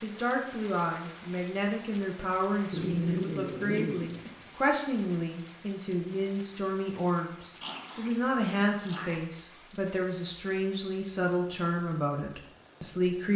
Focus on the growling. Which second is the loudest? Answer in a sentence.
The volume of the growling peaks at 3 seconds.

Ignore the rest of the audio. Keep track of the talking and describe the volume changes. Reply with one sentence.
The loudness of the talking stays about the same.